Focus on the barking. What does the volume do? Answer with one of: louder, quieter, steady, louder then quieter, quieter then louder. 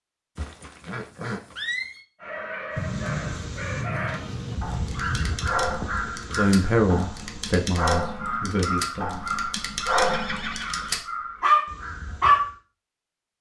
louder.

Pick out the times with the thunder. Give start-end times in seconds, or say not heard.
2.8-5.4.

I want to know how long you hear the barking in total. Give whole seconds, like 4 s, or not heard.
10 s.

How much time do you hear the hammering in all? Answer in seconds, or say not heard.
not heard.